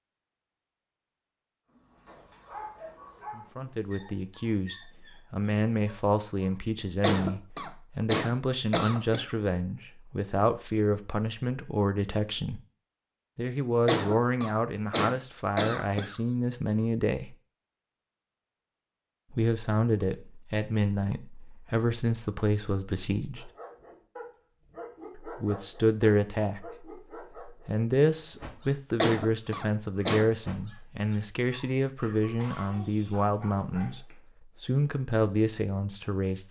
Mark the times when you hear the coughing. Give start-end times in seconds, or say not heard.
7.0-9.3, 13.8-16.1, 29.0-30.3.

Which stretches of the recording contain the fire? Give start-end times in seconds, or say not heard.
not heard.